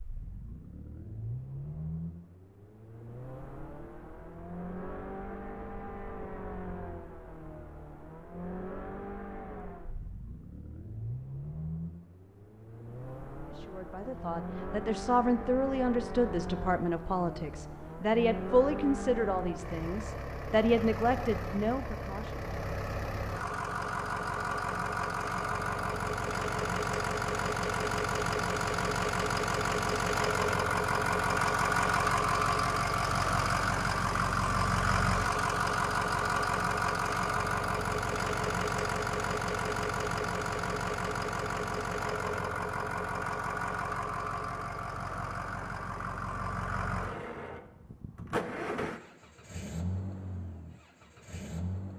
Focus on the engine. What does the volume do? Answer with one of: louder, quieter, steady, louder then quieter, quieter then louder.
louder then quieter.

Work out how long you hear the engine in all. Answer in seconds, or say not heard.
52 s.